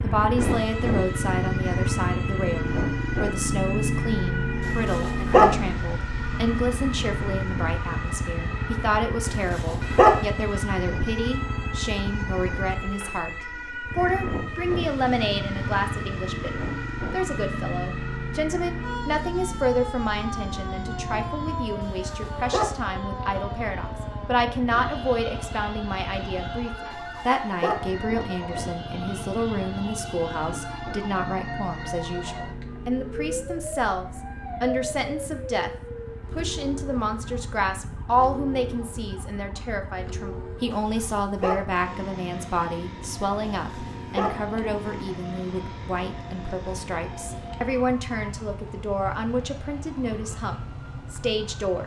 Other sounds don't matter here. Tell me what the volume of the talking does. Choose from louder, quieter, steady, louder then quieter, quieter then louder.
steady.